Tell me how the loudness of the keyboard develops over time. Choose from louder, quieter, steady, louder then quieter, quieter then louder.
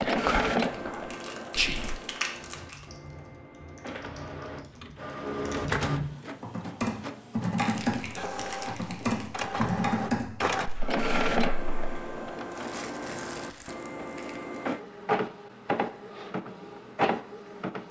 louder.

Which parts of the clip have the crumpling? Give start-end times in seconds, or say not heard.
0.6-2.9, 7.5-9.6, 12.5-14.6.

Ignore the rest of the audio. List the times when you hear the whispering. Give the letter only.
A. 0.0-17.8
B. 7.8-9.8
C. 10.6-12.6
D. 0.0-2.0
D.